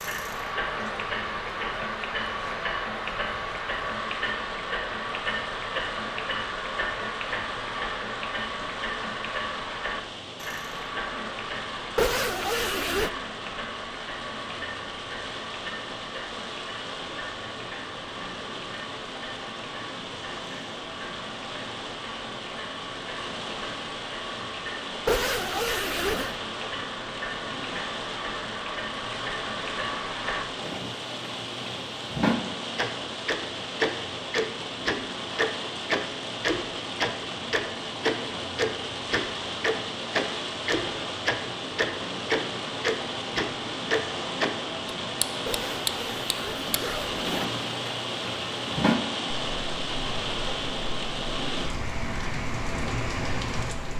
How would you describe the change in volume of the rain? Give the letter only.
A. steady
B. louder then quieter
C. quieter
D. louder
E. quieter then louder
D.